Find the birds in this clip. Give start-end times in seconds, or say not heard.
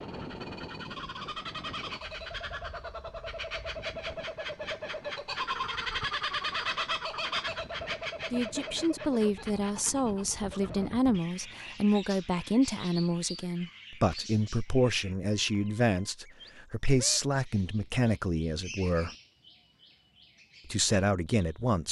0.0-21.8.